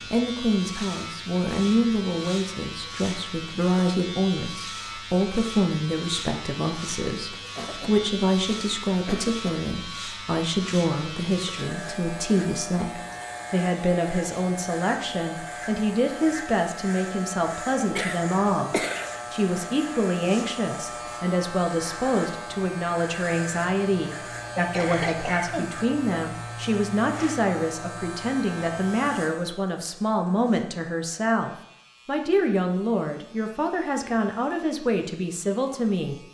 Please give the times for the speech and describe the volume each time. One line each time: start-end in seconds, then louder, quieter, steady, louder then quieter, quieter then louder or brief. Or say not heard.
0.0-36.1 steady.